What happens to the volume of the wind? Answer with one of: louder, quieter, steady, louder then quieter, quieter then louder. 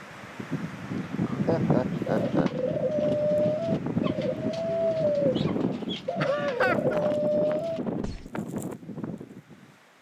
quieter.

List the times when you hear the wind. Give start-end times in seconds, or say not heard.
0.0-9.9.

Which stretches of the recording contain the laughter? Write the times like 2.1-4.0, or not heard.
1.1-2.5, 6.2-7.0.